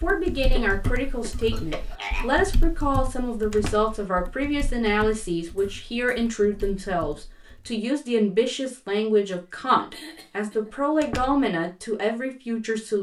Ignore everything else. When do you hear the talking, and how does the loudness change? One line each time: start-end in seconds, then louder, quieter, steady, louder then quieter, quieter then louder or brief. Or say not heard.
0.0-12.9 steady.